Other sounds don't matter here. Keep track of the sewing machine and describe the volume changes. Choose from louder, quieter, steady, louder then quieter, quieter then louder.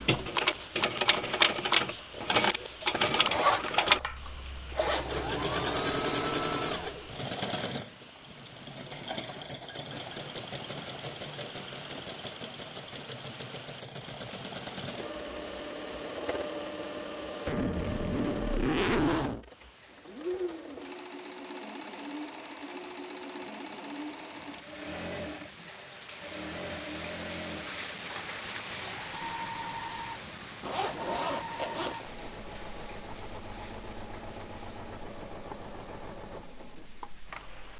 quieter.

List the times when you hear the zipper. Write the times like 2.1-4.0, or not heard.
3.2-5.2, 17.4-19.4, 30.6-32.1.